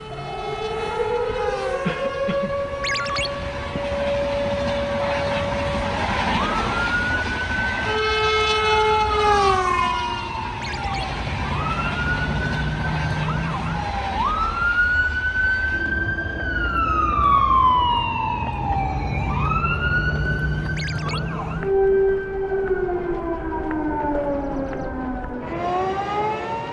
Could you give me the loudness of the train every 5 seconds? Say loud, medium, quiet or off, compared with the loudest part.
medium, loud, medium, quiet, quiet, quiet.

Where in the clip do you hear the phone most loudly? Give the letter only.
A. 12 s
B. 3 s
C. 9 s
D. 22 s
B.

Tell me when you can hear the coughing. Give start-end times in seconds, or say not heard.
1.8-2.5.